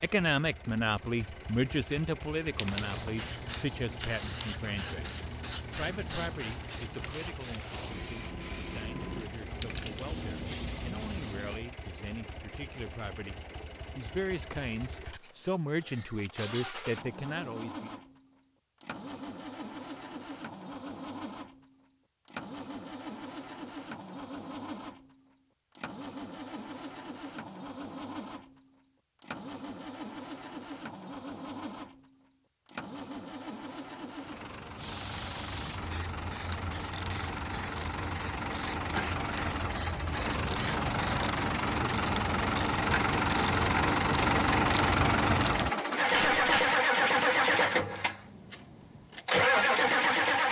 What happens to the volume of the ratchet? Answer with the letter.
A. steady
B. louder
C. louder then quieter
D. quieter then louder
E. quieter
B.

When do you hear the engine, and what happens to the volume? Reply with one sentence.
The engine can be heard from 0.0 to 50.4 s, getting louder.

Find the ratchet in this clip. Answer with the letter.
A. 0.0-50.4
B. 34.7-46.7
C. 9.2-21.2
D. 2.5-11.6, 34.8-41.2
B.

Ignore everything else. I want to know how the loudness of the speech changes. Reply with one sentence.
The volume of the speech goes down, then up.